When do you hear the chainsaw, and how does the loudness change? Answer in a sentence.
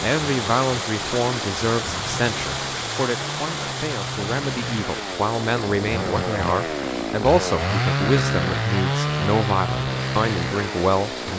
You can hear the chainsaw from 0.0 to 11.3 s, getting louder.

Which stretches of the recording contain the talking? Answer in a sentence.
The talking can be heard from 0.0 to 11.3 s.